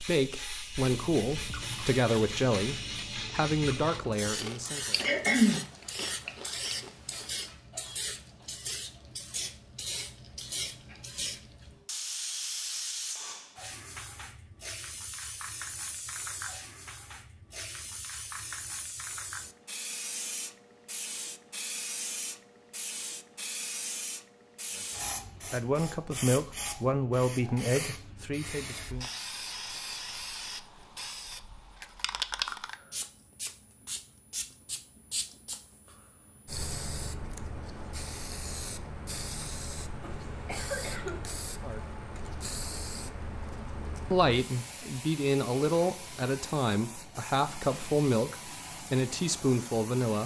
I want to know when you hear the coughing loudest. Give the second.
5 s.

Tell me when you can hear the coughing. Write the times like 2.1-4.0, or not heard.
5.0-5.7, 40.0-41.2.